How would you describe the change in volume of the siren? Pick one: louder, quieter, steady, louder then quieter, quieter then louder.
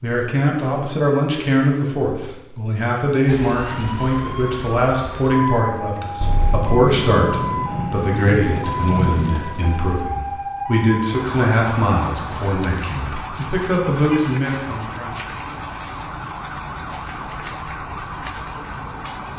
steady.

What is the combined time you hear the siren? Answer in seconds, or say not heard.
16 s.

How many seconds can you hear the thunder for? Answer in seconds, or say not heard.
3 s.